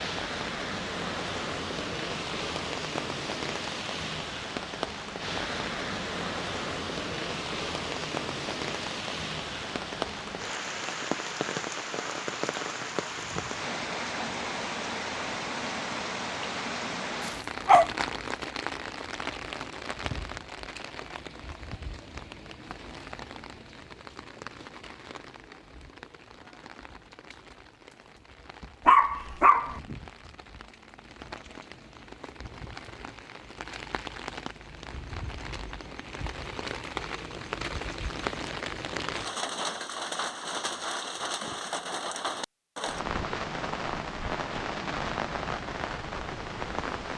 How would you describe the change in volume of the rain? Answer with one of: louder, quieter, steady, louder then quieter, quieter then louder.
quieter then louder.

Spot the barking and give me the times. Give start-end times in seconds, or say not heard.
17.2-17.9, 28.9-29.8.